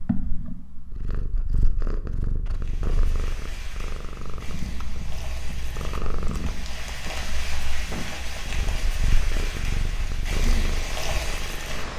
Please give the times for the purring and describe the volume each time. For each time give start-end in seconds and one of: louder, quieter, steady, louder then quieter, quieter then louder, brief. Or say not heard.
0.0-11.9 steady.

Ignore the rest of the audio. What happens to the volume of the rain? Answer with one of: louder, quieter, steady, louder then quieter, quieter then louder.
louder.